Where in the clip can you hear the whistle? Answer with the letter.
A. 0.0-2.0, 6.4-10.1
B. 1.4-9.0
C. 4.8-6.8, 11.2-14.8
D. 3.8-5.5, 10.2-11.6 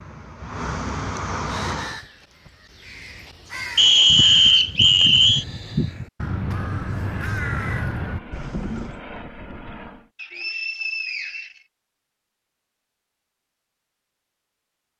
D.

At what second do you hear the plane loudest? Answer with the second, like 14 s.
1 s.